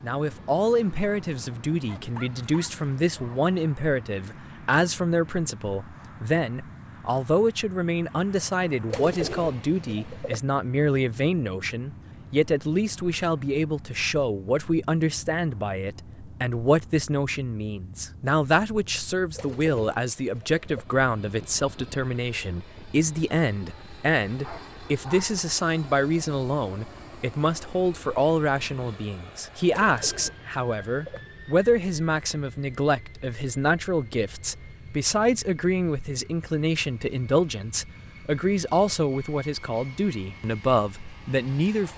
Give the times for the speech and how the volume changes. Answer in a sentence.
The speech can be heard from 0.0 to 41.9 s, at a steady volume.